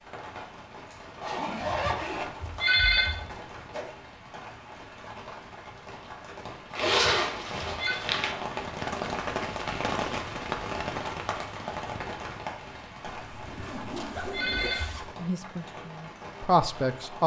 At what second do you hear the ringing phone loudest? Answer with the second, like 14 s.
3 s.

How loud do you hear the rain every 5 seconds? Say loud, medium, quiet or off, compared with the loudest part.
medium, loud, loud, medium.